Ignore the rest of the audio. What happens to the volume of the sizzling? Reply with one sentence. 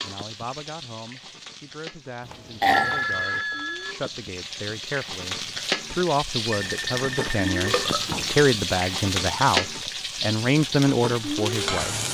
The loudness of the sizzling goes up.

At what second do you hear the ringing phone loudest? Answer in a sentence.
The loudest moment of the ringing phone is at 3 seconds.